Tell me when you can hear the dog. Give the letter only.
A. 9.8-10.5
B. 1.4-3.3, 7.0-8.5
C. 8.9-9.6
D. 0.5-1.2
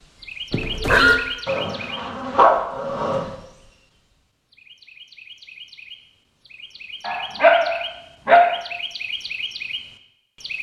B.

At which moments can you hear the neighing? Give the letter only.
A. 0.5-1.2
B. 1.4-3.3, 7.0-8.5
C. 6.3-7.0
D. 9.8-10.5
A.